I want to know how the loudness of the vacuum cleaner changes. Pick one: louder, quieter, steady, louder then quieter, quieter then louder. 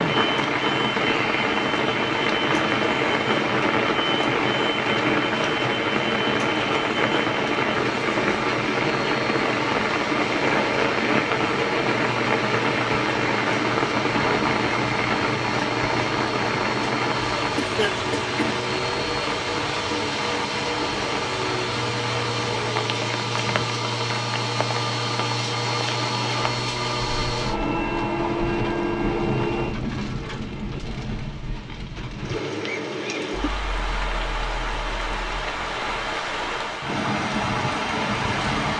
louder.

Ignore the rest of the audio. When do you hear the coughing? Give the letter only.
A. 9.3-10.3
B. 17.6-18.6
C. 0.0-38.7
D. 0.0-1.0
B.